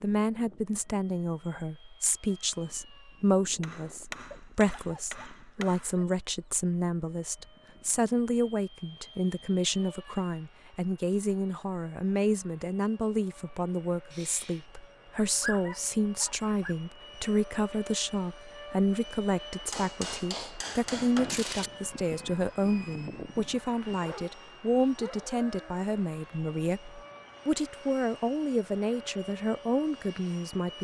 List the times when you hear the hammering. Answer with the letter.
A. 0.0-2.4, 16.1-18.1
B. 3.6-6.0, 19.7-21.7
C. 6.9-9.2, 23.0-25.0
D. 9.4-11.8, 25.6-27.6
B.